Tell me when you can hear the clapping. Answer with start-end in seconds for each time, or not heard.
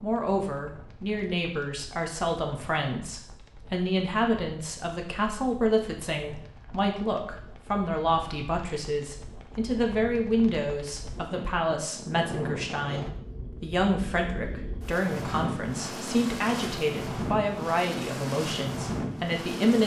not heard.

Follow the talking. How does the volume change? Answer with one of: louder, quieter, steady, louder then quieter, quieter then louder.
steady.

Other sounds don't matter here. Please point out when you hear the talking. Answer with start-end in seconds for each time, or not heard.
0.0-19.8.